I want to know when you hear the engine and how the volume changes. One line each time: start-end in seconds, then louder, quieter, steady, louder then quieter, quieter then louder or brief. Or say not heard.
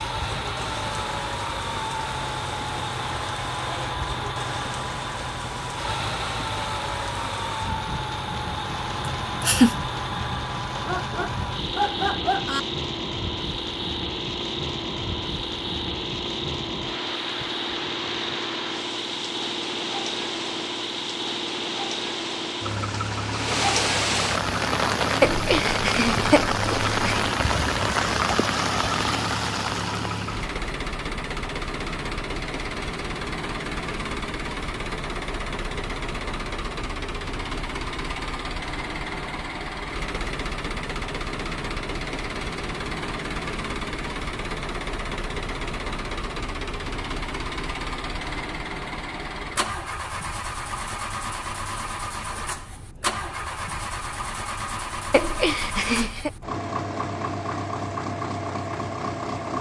0.0-59.5 steady.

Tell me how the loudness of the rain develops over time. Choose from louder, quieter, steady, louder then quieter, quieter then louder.
louder.